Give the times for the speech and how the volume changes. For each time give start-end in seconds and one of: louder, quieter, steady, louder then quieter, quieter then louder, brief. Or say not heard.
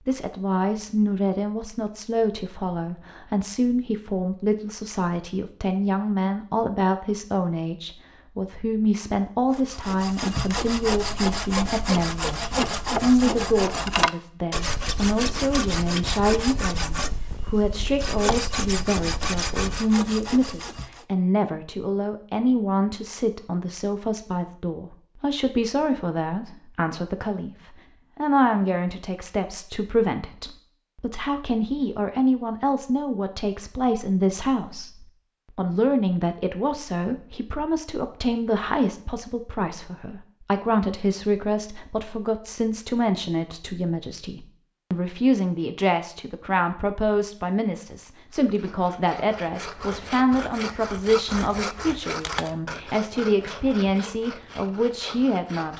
0.1-55.7 steady.